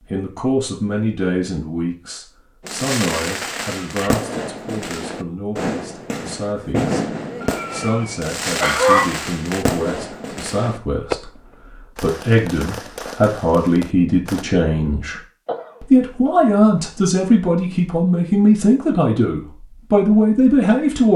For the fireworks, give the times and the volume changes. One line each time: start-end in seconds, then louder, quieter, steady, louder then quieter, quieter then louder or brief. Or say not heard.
2.6-14.4 quieter.